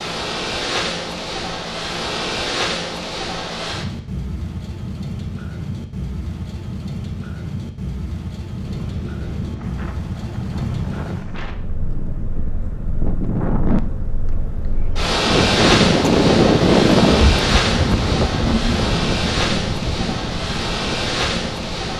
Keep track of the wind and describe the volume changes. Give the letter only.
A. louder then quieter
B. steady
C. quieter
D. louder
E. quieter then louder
A.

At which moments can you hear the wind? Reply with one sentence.
You can hear the wind from 8.6 to 21.9 s.